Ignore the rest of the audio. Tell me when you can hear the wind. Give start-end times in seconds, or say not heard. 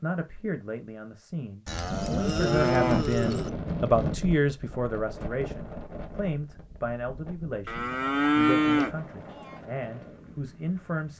1.9-11.1.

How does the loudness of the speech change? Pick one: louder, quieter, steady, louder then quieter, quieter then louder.
louder then quieter.